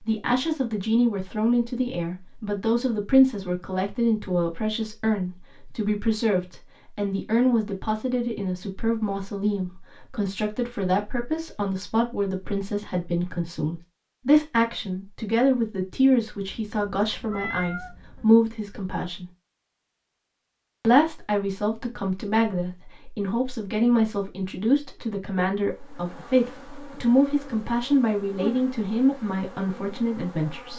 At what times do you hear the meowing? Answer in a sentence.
The meowing can be heard from 16.4 to 18.2 s.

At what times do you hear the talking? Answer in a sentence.
You can hear the talking from 0.1 to 19.2 s and from 20.8 to 30.7 s.